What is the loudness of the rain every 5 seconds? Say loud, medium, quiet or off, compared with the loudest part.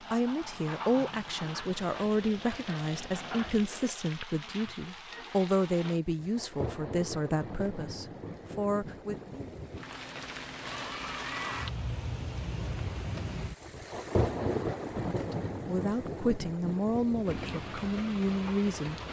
medium, medium, loud, loud.